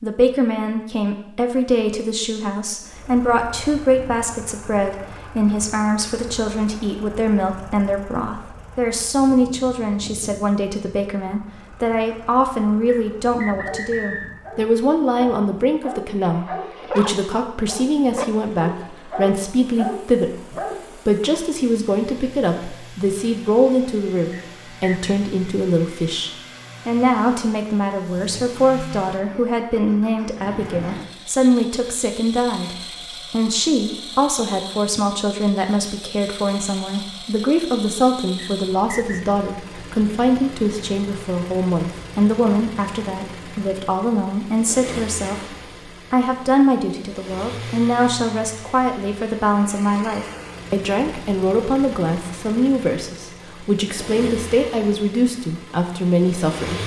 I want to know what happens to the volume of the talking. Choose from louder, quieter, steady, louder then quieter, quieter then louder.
steady.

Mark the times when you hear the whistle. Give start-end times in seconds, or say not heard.
12.8-14.3, 24.3-25.1, 38.4-39.2.